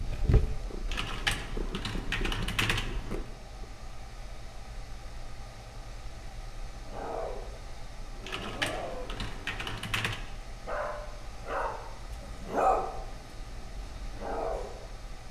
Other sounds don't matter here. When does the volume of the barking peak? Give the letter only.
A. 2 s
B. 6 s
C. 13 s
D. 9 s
C.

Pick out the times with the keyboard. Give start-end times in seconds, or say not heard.
0.8-3.2, 8.2-10.2.